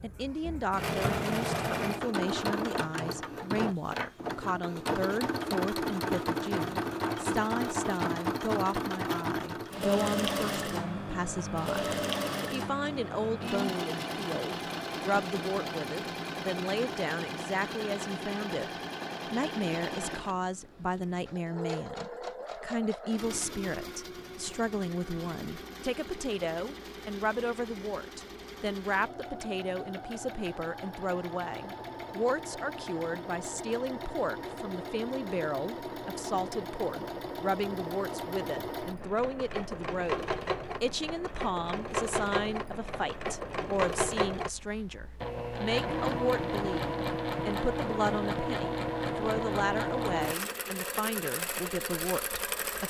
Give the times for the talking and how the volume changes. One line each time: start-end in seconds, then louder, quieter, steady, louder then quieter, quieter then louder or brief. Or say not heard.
0.0-18.7 steady
19.3-52.8 steady.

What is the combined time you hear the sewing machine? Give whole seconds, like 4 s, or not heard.
53 s.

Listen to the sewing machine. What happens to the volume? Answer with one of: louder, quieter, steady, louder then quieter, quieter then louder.
quieter then louder.